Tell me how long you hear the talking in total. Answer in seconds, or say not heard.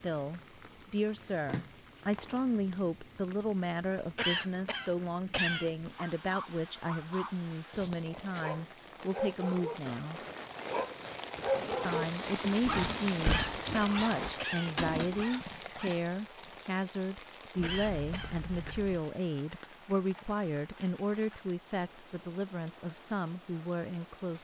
23 s.